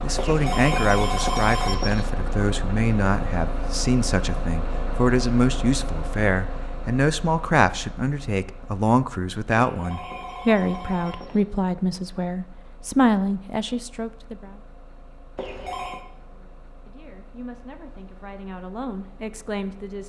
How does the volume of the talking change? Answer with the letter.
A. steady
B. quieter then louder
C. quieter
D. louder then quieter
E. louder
C.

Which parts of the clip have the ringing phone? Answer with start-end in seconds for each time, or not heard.
0.1-2.0, 9.6-11.4, 15.3-16.1.